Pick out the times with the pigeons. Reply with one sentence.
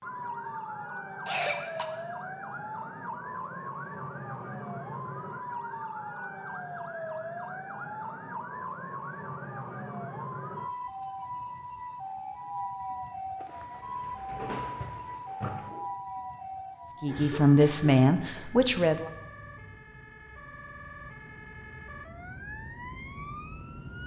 The pigeons can be heard from 13.4 to 15.8 s.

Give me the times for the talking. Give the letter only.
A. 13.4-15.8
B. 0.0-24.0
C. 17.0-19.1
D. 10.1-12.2
C.